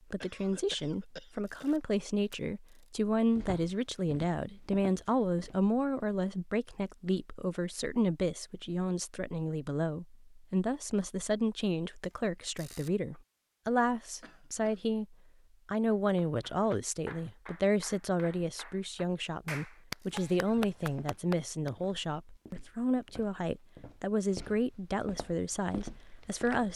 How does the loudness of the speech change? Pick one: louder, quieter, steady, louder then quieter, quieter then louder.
steady.